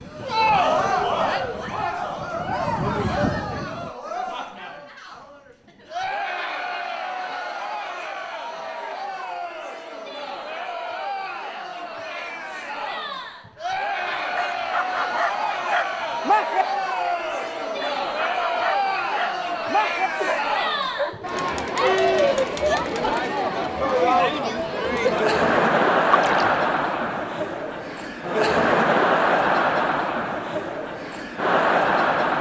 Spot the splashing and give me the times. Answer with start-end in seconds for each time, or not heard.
26.1-26.6.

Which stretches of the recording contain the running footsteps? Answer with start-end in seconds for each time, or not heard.
not heard.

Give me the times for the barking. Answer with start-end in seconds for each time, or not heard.
14.0-21.3.